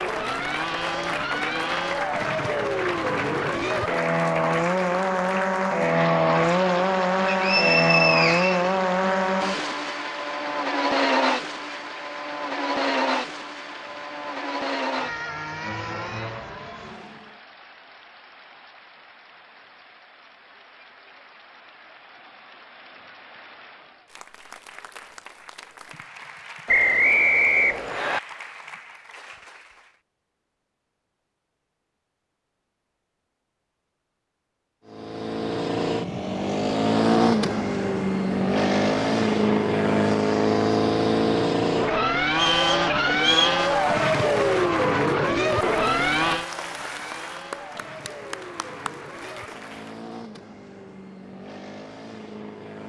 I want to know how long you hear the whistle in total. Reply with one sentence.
You can hear the whistle for 4 seconds altogether.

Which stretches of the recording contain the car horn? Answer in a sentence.
You can't hear the car horn here.